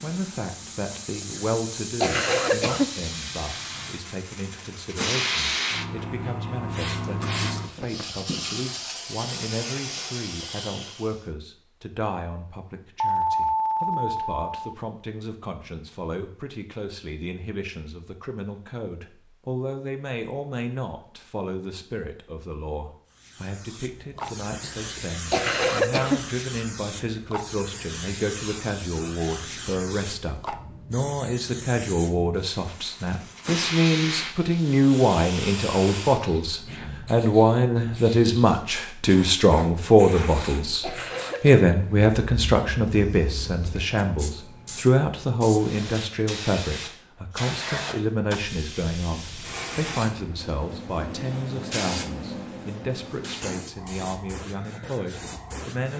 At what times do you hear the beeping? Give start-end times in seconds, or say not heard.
13.0-14.7.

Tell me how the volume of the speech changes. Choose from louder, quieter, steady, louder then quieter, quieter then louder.
louder then quieter.